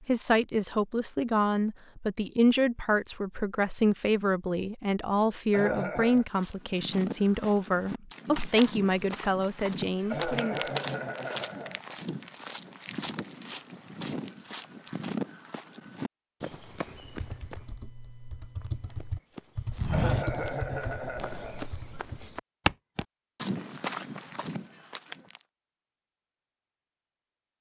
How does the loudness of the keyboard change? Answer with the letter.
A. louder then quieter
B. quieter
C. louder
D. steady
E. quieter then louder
A.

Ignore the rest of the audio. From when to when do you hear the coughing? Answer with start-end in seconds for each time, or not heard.
5.5-6.2, 10.1-11.8, 19.9-21.6.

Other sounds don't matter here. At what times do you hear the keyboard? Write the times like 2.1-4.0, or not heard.
16.9-22.2.